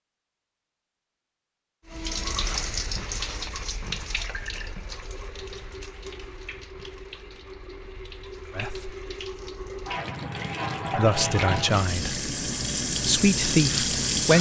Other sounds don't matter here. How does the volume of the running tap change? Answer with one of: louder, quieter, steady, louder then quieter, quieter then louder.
quieter then louder.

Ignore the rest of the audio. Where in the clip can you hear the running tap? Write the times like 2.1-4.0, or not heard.
1.9-14.3.